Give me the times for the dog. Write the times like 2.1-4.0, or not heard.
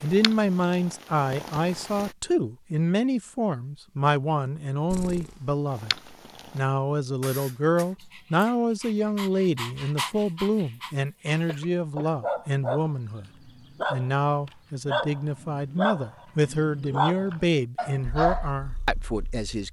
8.0-18.5.